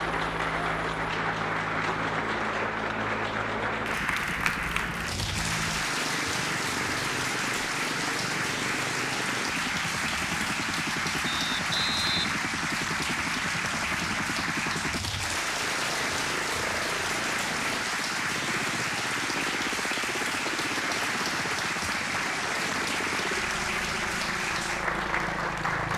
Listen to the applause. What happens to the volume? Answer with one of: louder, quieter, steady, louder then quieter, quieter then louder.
steady.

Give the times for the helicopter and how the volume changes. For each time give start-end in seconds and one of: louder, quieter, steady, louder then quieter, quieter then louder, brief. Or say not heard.
0.0-25.9 steady.